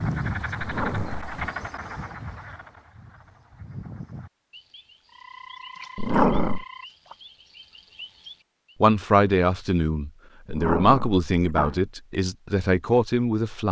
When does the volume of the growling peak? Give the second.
6 s.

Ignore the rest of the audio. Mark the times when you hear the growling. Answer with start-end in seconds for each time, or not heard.
0.6-1.4, 6.0-6.7, 10.4-11.8.